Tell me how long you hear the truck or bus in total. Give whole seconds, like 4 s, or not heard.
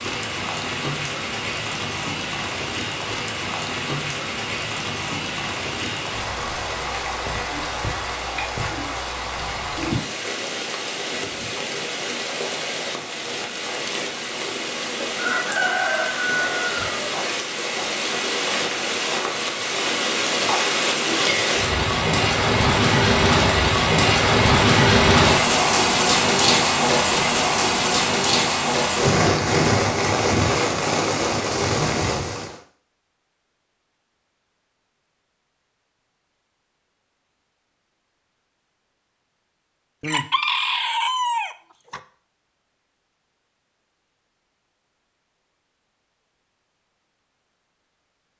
not heard.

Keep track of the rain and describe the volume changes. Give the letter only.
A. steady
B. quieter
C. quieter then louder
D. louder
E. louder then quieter
D.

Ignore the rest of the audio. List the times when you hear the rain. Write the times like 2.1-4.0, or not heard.
0.0-32.6.